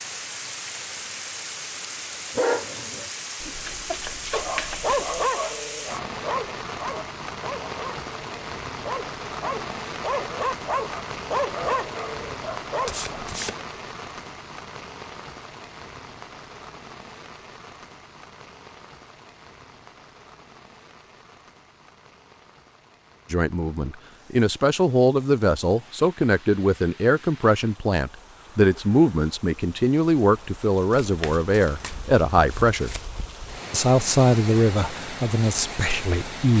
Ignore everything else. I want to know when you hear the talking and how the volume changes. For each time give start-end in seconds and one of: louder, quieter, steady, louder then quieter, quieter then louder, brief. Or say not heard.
23.3-33.0 steady
33.7-36.5 brief.